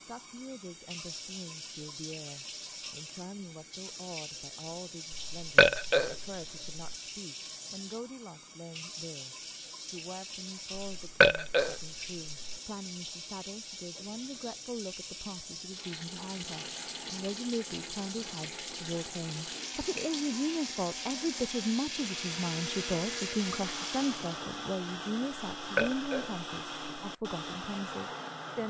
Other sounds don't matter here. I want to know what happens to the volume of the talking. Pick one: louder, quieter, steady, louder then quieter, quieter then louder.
louder.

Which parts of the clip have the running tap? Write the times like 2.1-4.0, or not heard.
0.0-24.5.